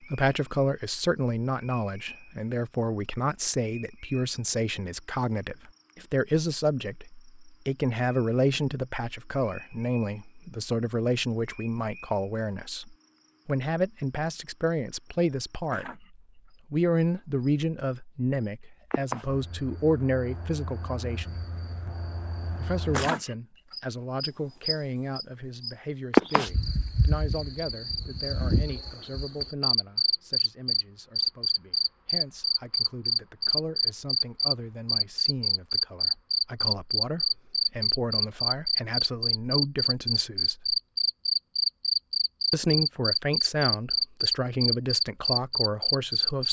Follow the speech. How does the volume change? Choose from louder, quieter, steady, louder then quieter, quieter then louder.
quieter then louder.